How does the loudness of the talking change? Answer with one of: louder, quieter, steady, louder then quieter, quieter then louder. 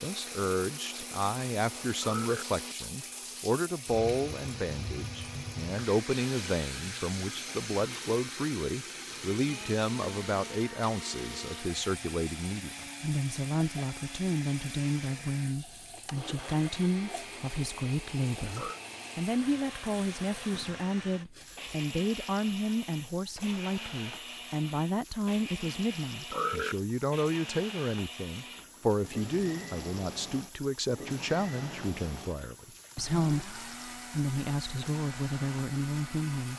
steady.